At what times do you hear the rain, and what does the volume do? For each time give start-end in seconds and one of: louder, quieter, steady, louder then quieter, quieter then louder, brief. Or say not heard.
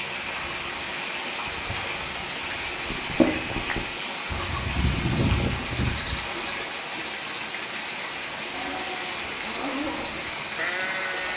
0.0-11.3 steady.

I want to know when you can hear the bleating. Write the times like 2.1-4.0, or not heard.
2.9-6.7, 8.5-11.3.